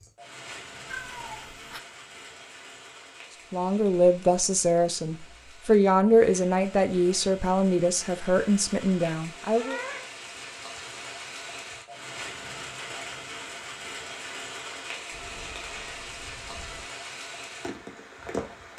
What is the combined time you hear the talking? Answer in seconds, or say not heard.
6 s.